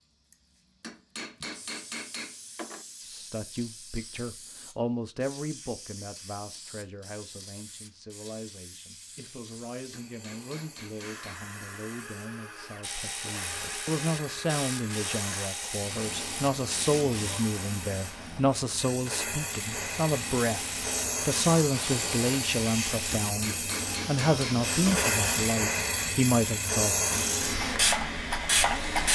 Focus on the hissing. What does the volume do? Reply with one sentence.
The loudness of the hissing goes up.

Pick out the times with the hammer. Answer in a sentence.
You can hear the hammer from 0.8 to 2.9 s, from 9.9 to 11.4 s and from 23.1 to 25.1 s.